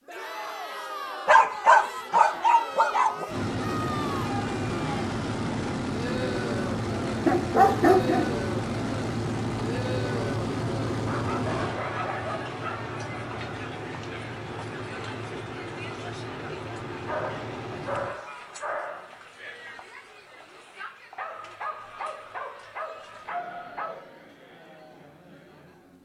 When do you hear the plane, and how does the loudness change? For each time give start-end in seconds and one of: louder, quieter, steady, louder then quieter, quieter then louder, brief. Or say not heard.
3.2-18.1 quieter.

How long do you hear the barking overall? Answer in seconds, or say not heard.
10 s.